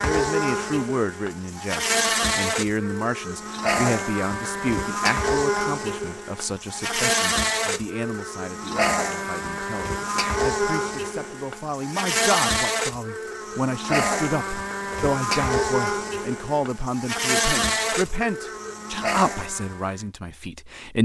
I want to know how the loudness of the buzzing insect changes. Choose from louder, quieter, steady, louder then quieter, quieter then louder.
steady.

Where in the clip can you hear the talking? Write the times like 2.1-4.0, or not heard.
0.0-20.9.